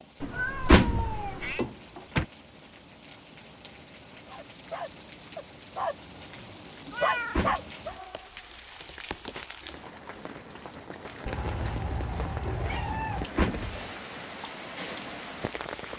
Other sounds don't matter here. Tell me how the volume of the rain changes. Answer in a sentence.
The volume of the rain goes up.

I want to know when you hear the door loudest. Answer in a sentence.
The loudest moment of the door is at 1 second.